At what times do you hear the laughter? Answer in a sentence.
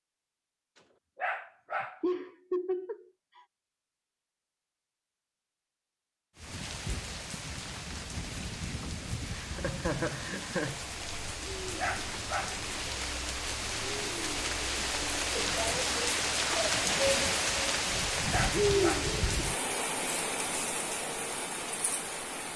You can hear the laughter from 2.0 to 3.4 s, from 8.8 to 10.8 s and from 15.3 to 15.9 s.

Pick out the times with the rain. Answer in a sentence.
The rain can be heard from 6.3 to 22.5 s.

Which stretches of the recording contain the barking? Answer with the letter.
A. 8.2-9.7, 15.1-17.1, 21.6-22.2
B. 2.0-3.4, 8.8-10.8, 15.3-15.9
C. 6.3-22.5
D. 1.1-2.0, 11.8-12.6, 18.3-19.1
D.